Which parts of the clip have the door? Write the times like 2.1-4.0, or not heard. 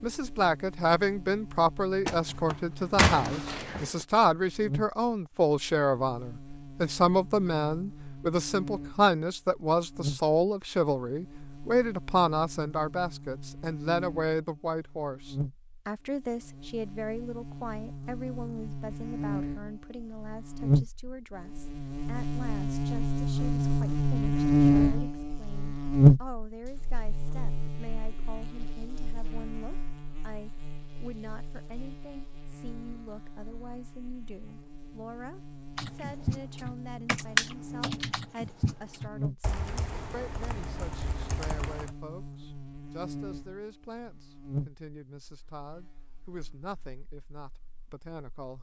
2.0-4.0.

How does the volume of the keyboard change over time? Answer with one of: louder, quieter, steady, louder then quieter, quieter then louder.
louder then quieter.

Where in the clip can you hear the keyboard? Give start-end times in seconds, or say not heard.
35.8-42.0.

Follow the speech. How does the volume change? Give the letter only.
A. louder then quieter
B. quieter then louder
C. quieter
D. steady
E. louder
C.